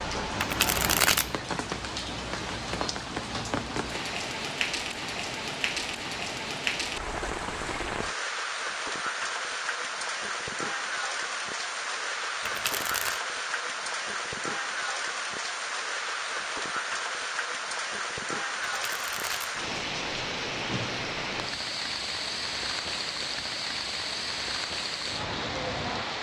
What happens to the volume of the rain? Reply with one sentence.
The loudness of the rain stays about the same.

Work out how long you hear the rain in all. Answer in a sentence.
You can hear the rain for 26 seconds altogether.